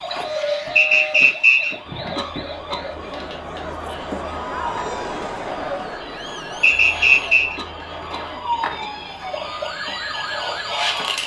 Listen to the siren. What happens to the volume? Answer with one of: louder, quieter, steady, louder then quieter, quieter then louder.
quieter then louder.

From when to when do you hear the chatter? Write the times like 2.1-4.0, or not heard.
1.8-11.2.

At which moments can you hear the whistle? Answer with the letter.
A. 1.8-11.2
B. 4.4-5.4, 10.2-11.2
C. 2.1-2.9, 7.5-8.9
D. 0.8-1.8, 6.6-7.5
D.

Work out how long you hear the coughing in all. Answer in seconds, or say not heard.
2 s.